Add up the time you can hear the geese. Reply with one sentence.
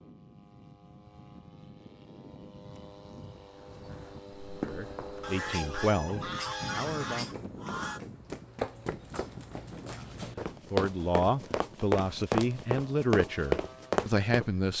The geese can be heard for 3 seconds in total.